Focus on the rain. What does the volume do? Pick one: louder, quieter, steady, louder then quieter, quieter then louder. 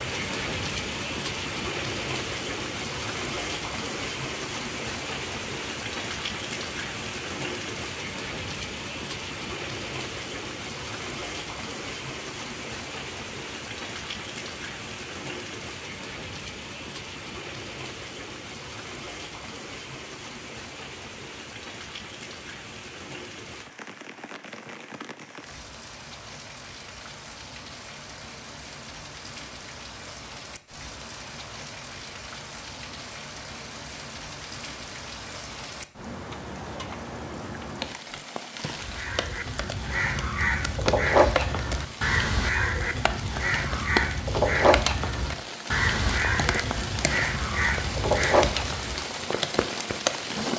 quieter then louder.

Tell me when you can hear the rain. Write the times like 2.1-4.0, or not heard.
0.0-50.5.